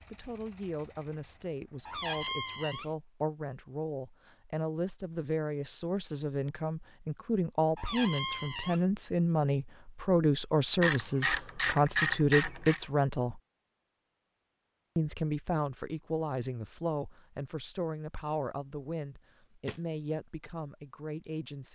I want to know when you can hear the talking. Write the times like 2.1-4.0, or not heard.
0.1-13.4, 14.9-21.7.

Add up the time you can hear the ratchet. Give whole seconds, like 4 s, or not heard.
2 s.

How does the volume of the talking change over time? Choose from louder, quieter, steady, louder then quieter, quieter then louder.
louder then quieter.